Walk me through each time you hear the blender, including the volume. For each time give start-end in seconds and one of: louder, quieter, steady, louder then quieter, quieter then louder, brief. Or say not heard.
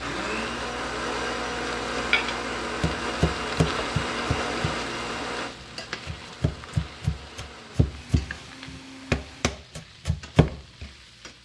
0.0-9.4 quieter.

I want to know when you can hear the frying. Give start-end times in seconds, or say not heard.
0.0-11.3.